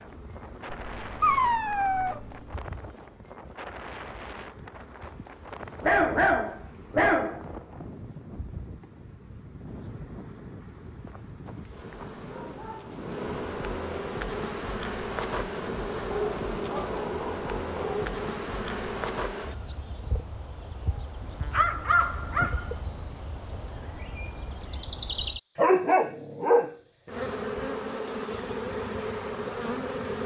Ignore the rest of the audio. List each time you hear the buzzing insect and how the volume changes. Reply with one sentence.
You can hear the buzzing insect from 0.0 to 30.2 s, getting louder.